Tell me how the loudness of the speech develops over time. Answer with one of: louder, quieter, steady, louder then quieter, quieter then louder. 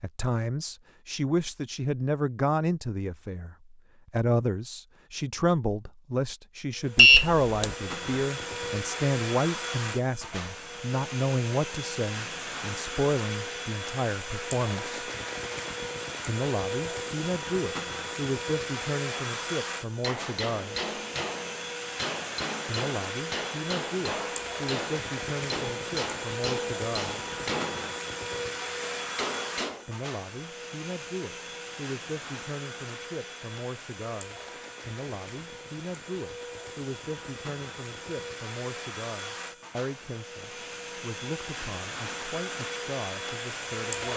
quieter.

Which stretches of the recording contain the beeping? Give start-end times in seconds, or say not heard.
7.0-7.8.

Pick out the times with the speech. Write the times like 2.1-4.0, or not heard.
0.0-15.0, 16.2-20.9, 22.6-27.1, 29.9-44.1.